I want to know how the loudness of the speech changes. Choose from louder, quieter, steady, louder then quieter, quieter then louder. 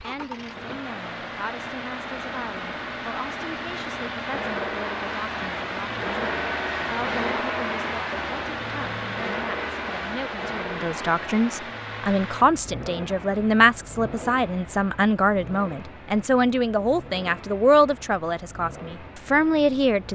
louder.